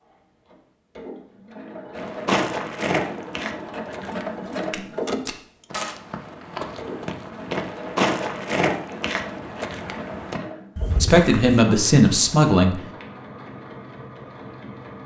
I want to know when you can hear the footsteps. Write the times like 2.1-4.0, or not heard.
1.9-11.7.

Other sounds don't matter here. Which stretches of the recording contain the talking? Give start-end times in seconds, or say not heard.
11.0-12.8.